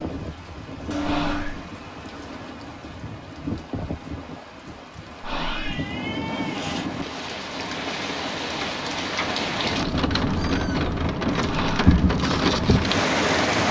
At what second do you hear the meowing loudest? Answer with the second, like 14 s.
1 s.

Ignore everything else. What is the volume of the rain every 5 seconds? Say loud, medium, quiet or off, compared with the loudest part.
quiet, medium, loud.